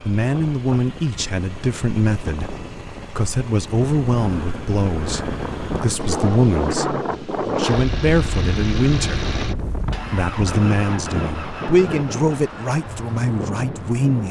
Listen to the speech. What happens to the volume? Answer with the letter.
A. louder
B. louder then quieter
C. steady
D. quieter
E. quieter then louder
C.